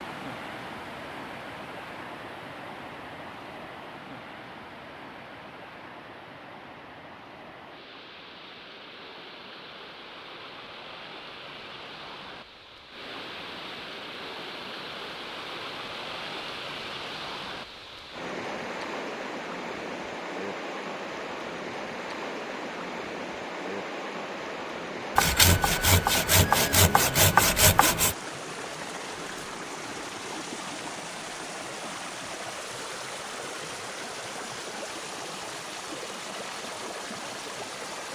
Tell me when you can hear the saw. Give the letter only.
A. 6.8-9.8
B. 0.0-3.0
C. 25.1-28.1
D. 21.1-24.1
C.